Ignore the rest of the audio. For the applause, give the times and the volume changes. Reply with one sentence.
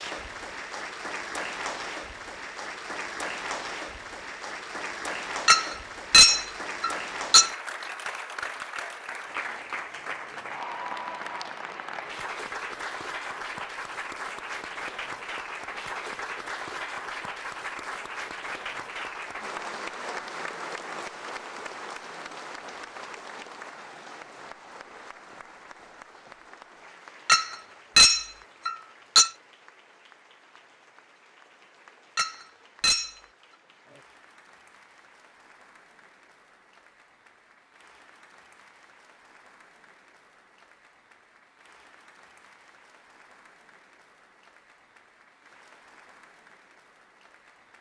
You can hear the applause from 0.0 to 47.7 s, getting quieter.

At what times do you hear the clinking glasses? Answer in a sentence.
You can hear the clinking glasses from 5.5 to 7.5 s, from 27.2 to 29.3 s and from 32.1 to 33.1 s.